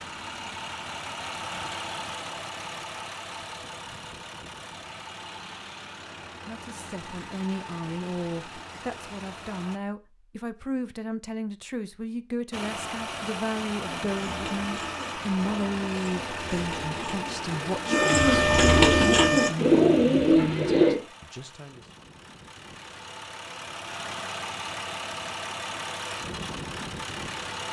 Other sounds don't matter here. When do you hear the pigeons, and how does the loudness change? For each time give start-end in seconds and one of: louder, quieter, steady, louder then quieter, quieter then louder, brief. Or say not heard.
13.8-21.0 louder.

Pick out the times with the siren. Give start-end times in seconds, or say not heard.
not heard.